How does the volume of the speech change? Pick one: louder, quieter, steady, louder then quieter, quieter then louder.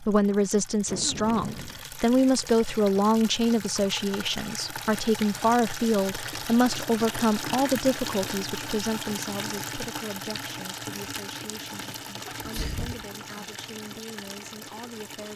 quieter.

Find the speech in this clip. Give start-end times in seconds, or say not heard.
0.0-15.3.